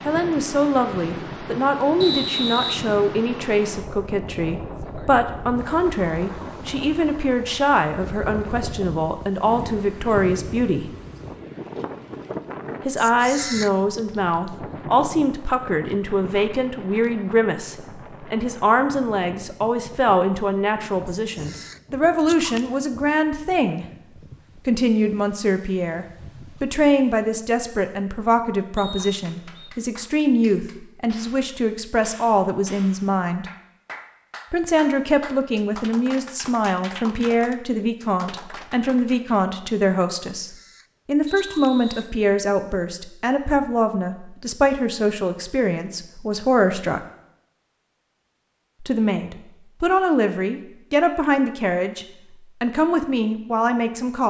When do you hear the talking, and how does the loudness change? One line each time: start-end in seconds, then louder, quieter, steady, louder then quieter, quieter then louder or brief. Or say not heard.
0.1-10.9 steady
12.8-23.9 steady
24.6-33.5 steady
34.5-47.0 steady
48.8-54.2 steady.